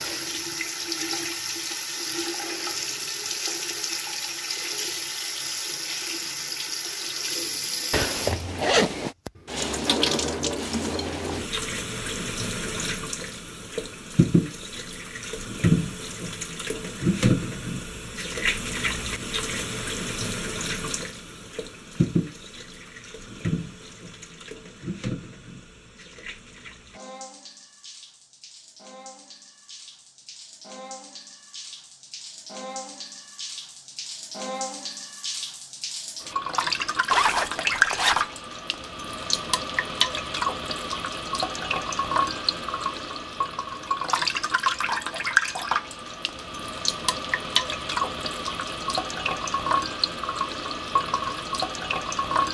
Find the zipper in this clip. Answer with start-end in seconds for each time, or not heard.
7.9-9.2, 37.1-38.3.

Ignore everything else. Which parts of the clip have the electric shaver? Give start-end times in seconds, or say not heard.
not heard.